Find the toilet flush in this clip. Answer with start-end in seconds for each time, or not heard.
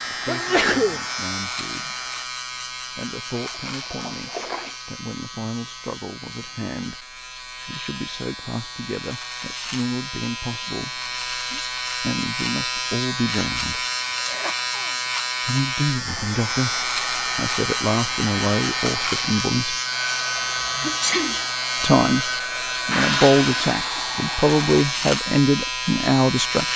3.3-4.8, 22.9-24.1.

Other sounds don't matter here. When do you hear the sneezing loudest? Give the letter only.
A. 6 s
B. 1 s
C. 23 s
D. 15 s
B.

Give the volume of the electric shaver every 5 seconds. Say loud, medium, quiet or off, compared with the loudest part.
medium, medium, loud, loud, loud, loud.